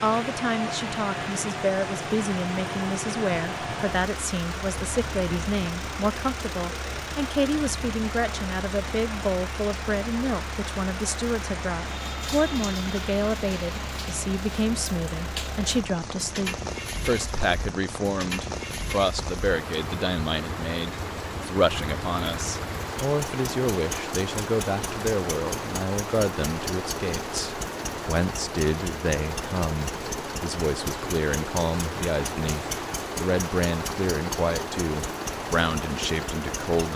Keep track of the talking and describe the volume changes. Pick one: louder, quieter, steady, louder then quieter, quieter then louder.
steady.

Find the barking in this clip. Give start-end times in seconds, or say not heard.
not heard.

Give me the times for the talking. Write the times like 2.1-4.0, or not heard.
0.0-36.9.